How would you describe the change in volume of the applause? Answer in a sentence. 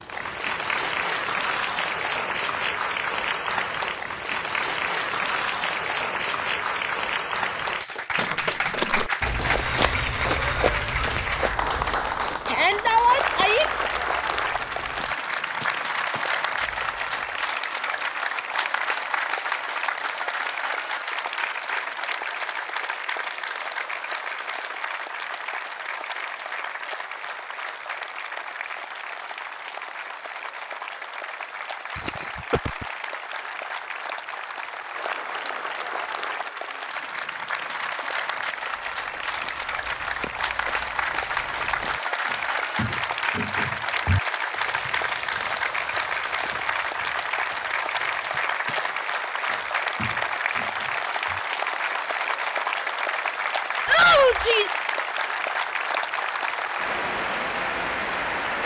The volume of the applause goes down, then up.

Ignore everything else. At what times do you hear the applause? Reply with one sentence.
You can hear the applause from 0.0 to 58.6 s.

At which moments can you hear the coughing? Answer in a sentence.
You can hear the coughing from 31.9 to 32.9 s.